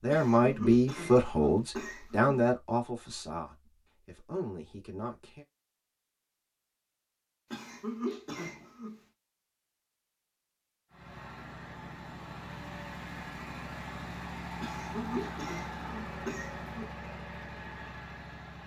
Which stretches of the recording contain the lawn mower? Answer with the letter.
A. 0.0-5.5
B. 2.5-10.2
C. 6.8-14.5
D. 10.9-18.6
D.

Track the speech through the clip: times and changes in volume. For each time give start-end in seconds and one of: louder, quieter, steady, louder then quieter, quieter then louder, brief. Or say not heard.
0.0-5.5 quieter.